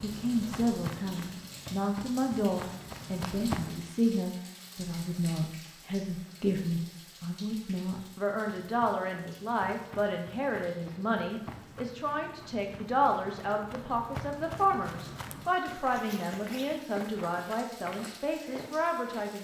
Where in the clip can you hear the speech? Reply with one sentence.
The speech can be heard from 0.0 to 19.3 s.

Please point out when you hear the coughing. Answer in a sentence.
You can't hear the coughing here.